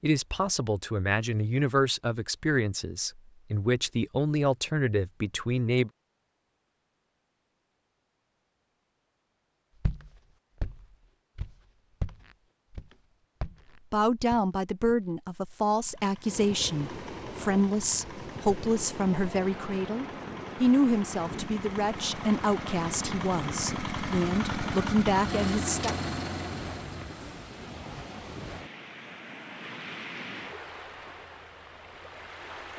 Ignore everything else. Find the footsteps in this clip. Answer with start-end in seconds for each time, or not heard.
9.8-15.0.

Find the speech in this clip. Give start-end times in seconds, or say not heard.
0.0-5.9, 13.9-25.9.